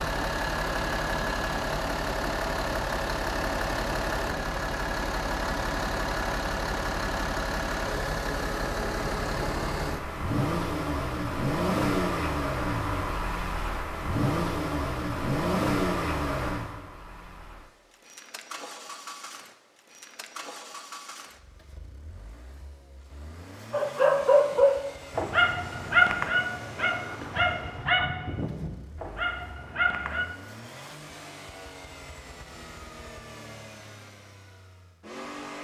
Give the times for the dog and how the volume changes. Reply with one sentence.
You can hear the dog from 23.7 to 30.2 s, getting quieter.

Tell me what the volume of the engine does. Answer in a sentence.
The volume of the engine goes down.